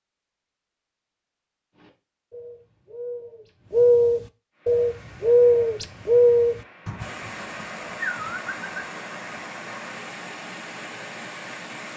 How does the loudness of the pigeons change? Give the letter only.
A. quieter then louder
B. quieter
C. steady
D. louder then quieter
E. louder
D.